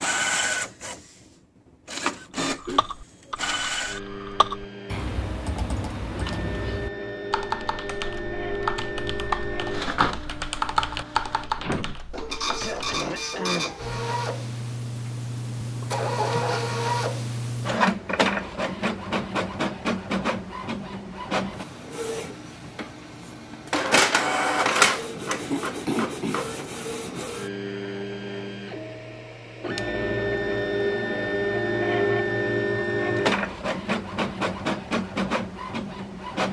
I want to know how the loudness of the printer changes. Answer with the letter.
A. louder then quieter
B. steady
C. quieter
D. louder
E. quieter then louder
D.